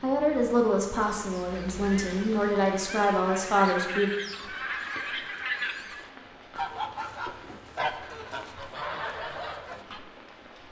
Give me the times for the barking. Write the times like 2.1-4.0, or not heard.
not heard.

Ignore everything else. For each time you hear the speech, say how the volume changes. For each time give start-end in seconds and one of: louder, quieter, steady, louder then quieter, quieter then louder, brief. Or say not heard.
0.0-4.1 quieter then louder.